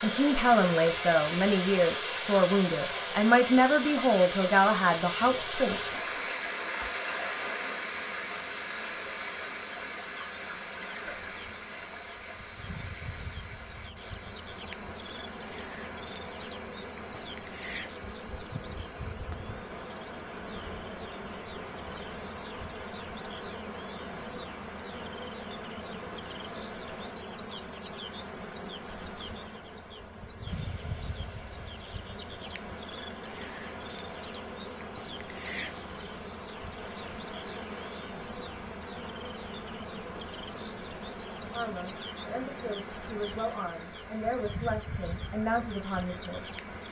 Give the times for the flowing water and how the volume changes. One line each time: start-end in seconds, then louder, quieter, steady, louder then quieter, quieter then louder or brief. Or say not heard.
0.0-46.8 quieter.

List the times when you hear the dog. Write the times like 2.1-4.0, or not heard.
not heard.